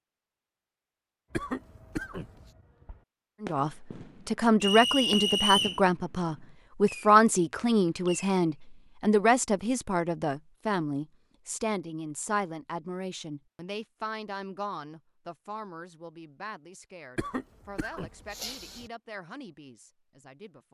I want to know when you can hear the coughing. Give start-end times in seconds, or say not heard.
1.3-2.5, 17.1-18.9.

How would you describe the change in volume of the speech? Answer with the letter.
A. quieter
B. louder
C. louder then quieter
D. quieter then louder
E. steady
A.